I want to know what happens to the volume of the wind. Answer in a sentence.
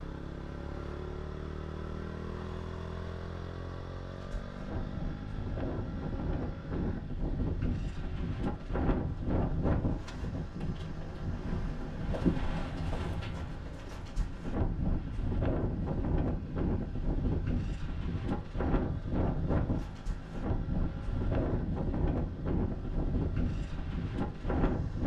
The loudness of the wind stays about the same.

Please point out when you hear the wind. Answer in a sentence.
You can hear the wind from 4.1 to 25.0 s.